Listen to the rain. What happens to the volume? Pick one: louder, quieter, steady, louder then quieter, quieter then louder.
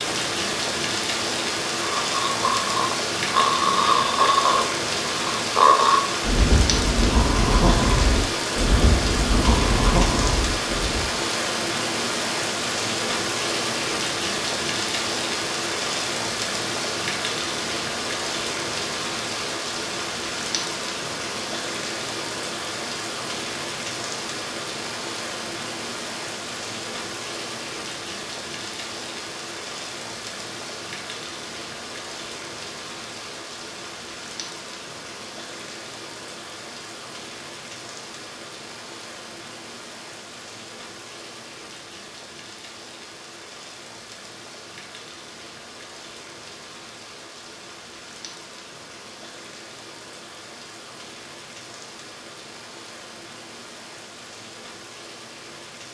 quieter.